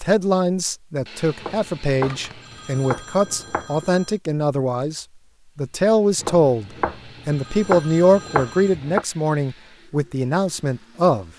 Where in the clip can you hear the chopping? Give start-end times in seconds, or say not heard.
1.4-3.8, 6.2-9.1.